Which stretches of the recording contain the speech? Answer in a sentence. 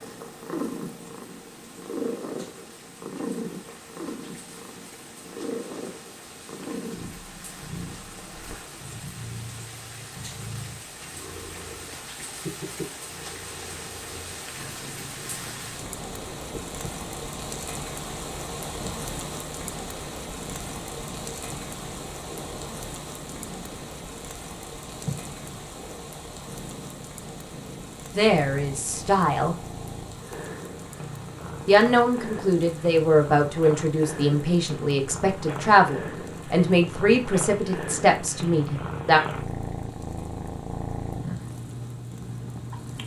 You can hear the speech from 28.1 to 29.6 s and from 31.6 to 39.2 s.